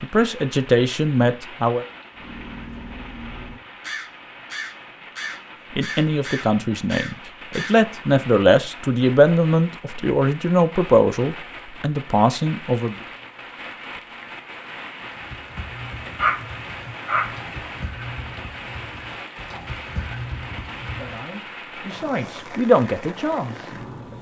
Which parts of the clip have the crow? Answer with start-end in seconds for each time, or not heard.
2.1-7.8.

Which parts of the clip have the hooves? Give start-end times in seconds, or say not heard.
15.1-21.2.